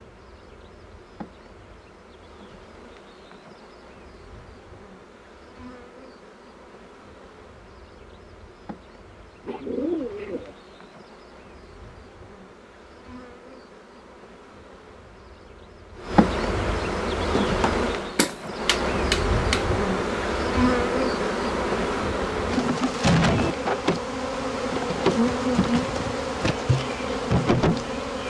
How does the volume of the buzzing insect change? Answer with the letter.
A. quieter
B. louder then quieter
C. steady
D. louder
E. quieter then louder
D.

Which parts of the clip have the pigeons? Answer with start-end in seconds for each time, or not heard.
9.4-10.6.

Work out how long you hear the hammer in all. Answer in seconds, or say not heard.
2 s.